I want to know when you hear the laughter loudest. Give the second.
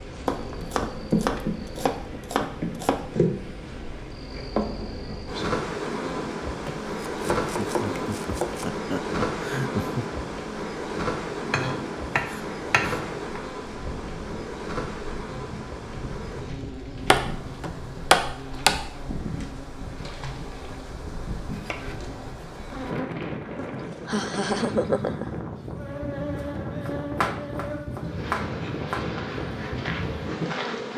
25 s.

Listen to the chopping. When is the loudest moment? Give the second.
18 s.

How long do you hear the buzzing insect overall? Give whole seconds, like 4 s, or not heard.
31 s.